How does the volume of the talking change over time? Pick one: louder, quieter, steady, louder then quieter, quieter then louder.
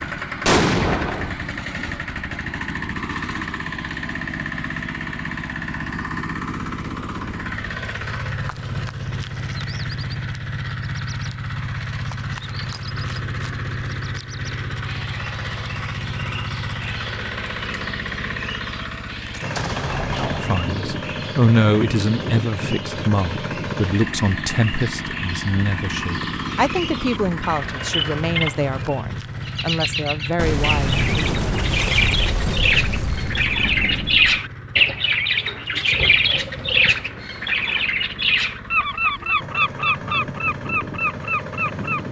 quieter.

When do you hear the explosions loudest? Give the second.
1 s.